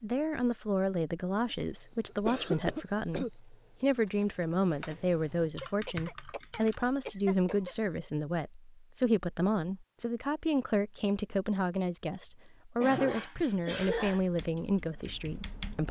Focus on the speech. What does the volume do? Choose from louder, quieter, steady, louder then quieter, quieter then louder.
steady.